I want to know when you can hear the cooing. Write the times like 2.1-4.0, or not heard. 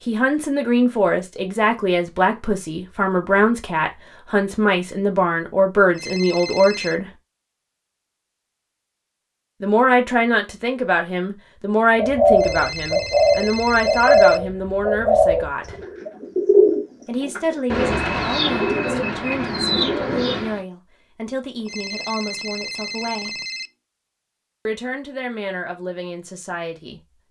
11.9-20.6.